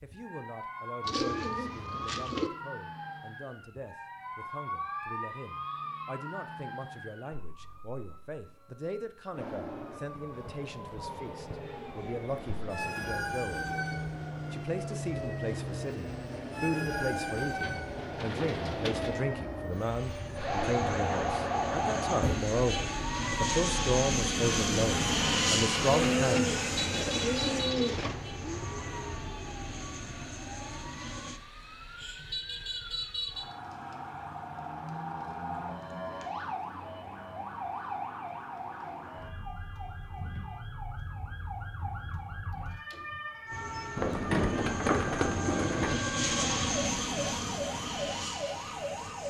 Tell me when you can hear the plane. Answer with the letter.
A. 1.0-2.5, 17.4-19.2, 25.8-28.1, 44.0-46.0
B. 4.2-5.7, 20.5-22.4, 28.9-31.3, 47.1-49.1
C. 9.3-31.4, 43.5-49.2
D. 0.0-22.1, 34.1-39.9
C.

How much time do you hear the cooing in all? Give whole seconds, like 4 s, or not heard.
8 s.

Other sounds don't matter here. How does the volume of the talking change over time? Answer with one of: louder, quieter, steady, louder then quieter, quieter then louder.
louder.